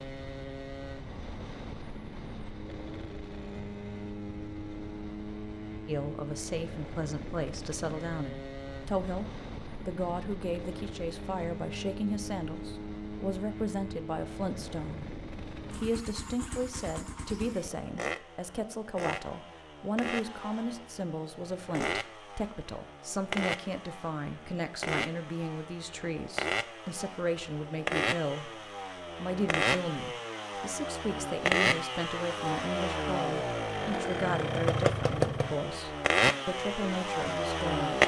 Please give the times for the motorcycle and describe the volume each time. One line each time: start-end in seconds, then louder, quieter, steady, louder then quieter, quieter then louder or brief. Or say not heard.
0.0-38.0 louder.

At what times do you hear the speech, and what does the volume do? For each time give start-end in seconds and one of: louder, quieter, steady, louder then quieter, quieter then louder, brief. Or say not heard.
5.8-28.6 steady
29.2-38.0 steady.